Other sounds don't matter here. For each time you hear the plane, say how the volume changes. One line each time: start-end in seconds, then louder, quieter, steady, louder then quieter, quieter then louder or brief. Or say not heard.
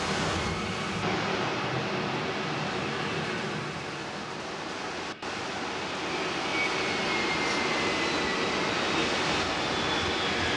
0.0-10.5 quieter then louder.